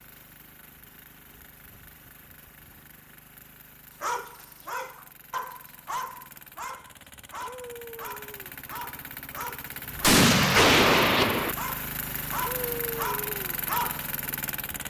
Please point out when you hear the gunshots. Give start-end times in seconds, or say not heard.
10.0-11.6.